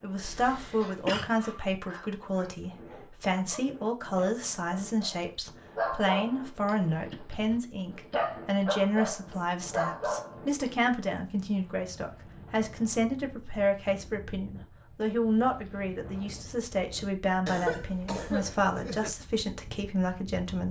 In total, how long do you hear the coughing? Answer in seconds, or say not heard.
3 s.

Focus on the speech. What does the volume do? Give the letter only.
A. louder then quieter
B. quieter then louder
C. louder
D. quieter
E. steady
E.